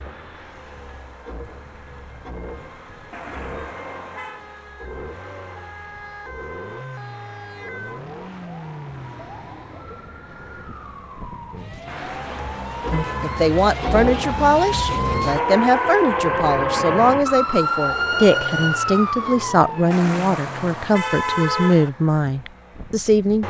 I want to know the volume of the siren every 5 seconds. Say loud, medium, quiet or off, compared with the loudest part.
quiet, quiet, medium, loud, off.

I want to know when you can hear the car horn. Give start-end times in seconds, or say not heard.
3.1-4.5, 11.8-13.4, 19.9-21.9.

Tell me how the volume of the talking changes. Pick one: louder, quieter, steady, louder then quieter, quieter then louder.
steady.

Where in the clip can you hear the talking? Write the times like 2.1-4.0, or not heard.
12.9-23.4.